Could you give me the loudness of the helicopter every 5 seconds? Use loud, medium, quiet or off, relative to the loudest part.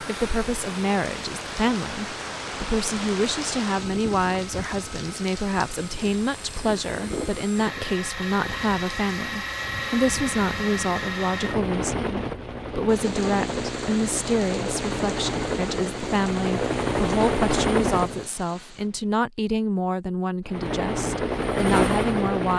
quiet, medium, medium, loud, loud.